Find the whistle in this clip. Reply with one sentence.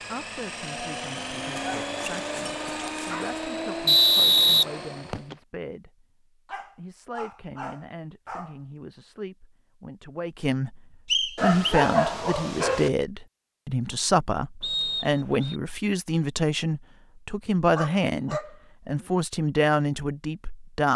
The whistle can be heard from 3.9 to 5.3 s, from 11.1 to 11.8 s and from 14.6 to 15.6 s.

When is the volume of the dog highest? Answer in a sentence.
The loudest moment of the dog is at 12 seconds.